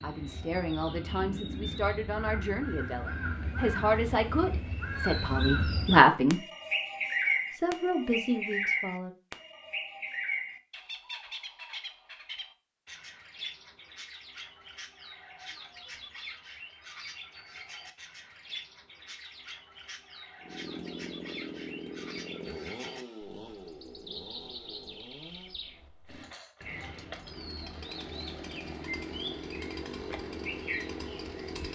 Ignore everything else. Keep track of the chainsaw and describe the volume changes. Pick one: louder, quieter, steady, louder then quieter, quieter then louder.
quieter then louder.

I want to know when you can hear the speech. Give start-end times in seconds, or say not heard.
0.0-6.4, 7.5-9.1.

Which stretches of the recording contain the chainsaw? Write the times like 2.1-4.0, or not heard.
20.4-31.7.